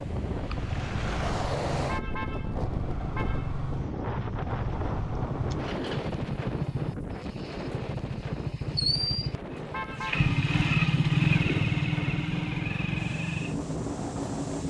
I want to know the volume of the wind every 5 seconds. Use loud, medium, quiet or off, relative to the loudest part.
loud, loud, medium.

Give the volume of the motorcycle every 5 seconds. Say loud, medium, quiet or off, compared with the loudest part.
medium, medium, loud.